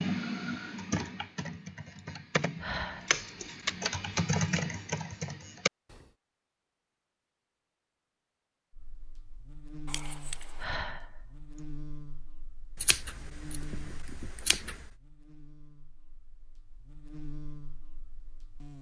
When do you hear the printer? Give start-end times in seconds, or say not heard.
not heard.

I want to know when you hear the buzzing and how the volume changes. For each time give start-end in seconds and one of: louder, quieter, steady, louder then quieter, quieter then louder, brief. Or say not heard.
8.7-18.7 quieter then louder.